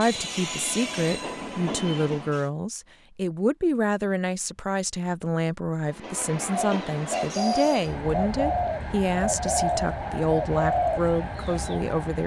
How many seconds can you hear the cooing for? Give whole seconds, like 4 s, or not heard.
5 s.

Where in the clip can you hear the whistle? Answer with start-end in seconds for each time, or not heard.
not heard.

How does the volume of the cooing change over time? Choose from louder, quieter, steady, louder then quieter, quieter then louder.
steady.